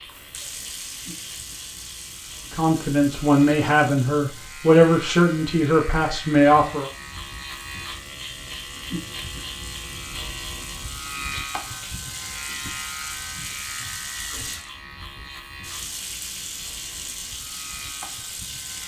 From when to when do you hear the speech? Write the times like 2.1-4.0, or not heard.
2.5-6.9.